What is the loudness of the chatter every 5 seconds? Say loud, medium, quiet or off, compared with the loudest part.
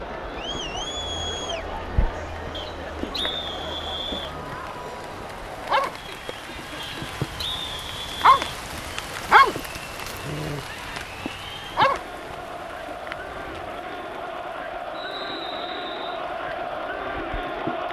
loud, medium, medium, loud.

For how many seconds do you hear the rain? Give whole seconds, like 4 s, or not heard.
18 s.